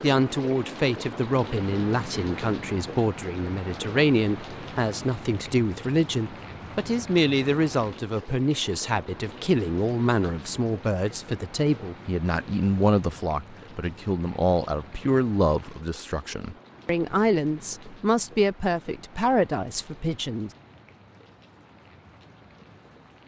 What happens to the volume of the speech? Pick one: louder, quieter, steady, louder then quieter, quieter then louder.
steady.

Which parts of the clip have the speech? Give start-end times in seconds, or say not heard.
0.0-20.5.